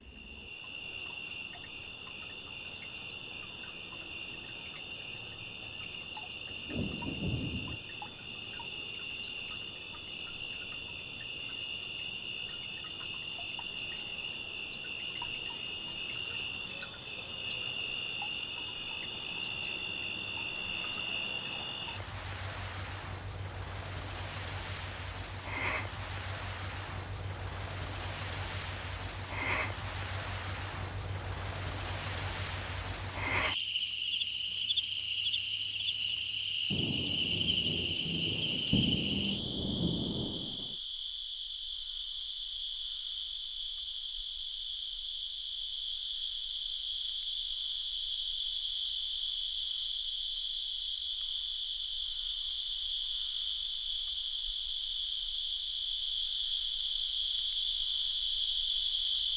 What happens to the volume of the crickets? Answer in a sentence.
The volume of the crickets goes up.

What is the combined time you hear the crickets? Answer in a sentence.
The crickets can be heard for 59 seconds in total.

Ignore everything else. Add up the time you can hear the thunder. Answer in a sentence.
You can hear the thunder for 5 seconds altogether.